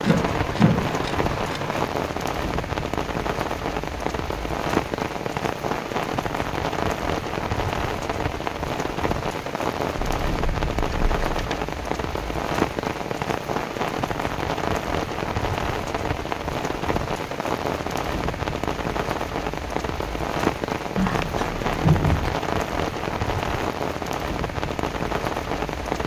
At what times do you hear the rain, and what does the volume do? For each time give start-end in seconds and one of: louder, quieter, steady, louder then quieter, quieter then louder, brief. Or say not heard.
0.0-26.0 steady.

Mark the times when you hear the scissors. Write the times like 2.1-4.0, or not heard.
0.0-1.9, 10.0-11.6, 20.9-22.4.